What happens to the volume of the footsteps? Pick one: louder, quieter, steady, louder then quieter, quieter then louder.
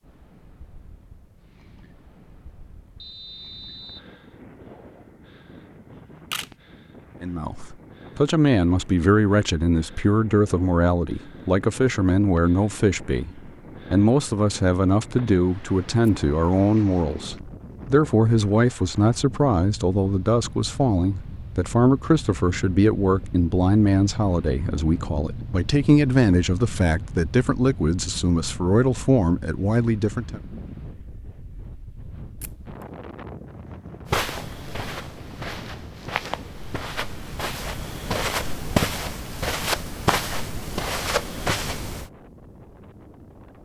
louder.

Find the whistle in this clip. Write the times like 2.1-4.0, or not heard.
3.0-4.1.